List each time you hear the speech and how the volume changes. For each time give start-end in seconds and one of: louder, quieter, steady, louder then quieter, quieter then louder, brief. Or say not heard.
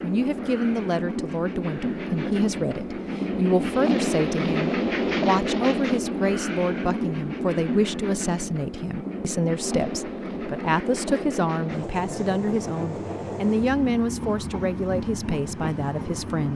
0.0-16.5 steady.